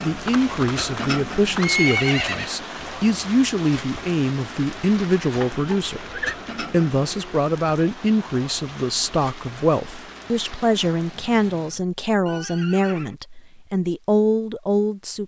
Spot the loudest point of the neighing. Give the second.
2 s.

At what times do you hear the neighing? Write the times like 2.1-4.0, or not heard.
0.2-2.5, 5.3-6.3, 12.2-13.2.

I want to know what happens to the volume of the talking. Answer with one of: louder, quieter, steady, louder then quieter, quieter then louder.
steady.